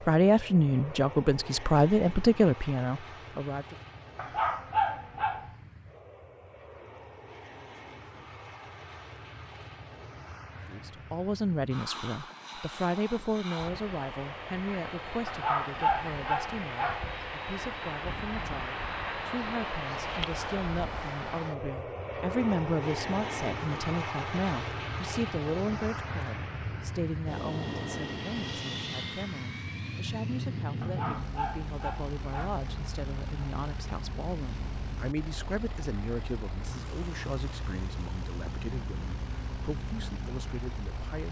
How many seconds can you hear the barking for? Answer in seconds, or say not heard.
5 s.